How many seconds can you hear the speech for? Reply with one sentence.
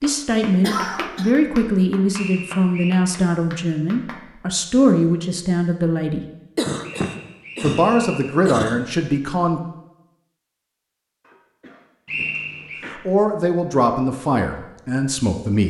The speech can be heard for 11 seconds in total.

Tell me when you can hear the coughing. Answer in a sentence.
You can hear the coughing from 0.6 to 1.3 s, from 6.5 to 8.8 s and from 11.2 to 13.0 s.